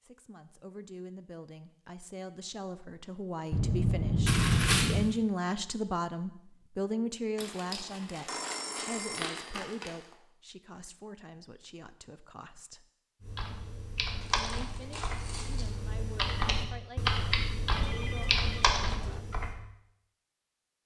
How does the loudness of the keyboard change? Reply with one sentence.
The volume of the keyboard goes down, then up.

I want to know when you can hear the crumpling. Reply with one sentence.
You can hear the crumpling from 4.2 to 4.9 s, from 7.3 to 10.1 s and from 14.2 to 15.8 s.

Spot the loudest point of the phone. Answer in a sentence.
The volume of the phone peaks at 4 seconds.